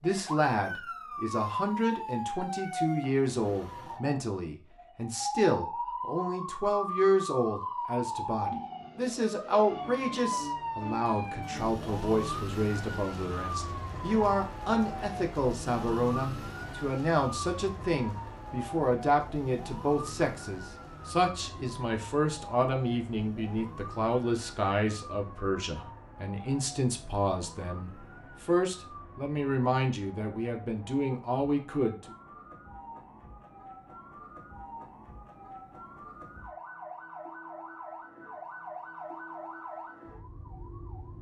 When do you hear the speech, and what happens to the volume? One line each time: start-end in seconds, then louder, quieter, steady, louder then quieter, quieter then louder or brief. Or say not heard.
0.0-32.1 steady.